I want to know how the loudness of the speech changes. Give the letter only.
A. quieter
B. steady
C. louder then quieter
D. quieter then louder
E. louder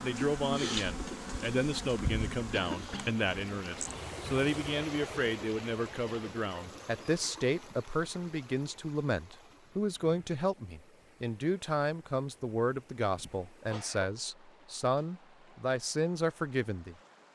B.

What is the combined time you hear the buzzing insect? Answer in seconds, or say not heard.
5 s.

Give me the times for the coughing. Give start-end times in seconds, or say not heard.
2.5-3.2, 6.0-6.8, 13.2-14.1.